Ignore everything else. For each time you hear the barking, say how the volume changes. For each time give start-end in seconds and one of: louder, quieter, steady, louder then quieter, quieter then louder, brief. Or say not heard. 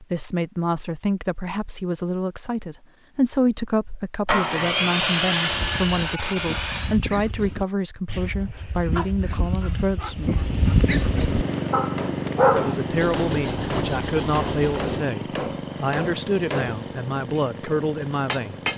5.5-12.8 louder.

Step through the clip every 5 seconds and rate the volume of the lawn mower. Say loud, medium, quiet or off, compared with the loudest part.
off, off, loud, medium.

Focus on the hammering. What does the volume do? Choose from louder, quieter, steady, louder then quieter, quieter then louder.
quieter.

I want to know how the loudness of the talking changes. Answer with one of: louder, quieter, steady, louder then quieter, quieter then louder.
steady.